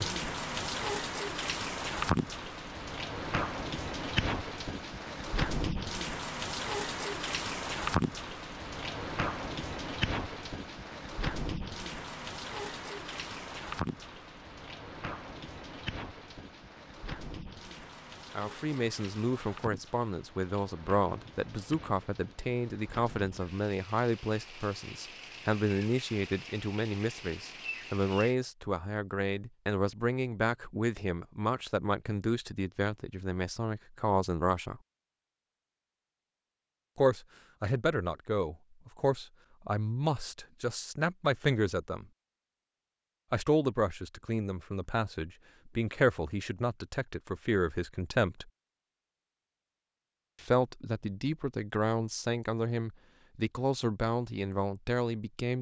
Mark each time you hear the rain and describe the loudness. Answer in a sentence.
The rain can be heard from 0.0 to 28.4 s, getting quieter.